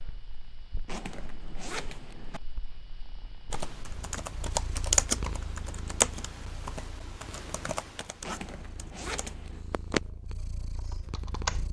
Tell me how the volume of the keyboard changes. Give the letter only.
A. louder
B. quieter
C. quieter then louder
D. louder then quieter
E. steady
C.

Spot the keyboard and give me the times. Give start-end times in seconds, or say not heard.
3.5-11.6.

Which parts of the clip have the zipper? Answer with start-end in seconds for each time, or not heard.
0.8-2.4, 8.2-9.6.